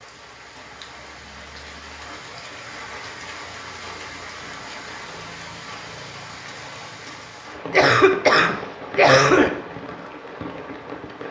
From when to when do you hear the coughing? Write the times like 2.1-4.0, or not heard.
7.7-9.5.